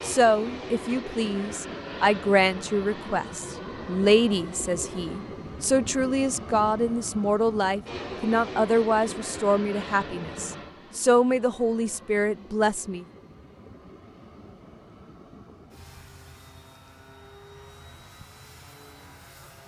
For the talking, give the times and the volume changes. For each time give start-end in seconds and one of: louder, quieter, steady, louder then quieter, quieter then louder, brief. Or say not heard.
0.1-13.1 steady.